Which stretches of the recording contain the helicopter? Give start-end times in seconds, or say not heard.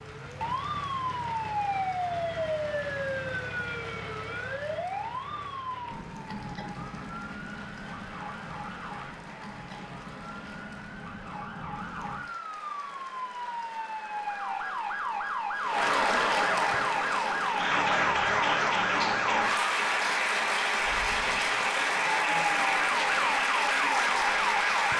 not heard.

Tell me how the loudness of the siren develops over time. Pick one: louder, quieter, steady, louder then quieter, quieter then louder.
quieter then louder.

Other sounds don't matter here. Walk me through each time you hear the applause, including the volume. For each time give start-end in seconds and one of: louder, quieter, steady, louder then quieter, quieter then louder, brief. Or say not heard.
0.0-24.9 louder.